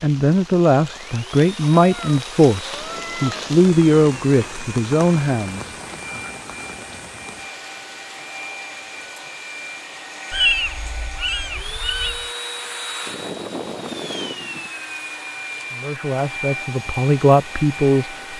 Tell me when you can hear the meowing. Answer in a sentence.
You can hear the meowing from 1.8 to 3.5 s and from 10.3 to 12.3 s.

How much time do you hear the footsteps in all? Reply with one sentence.
The footsteps can't be heard in this clip.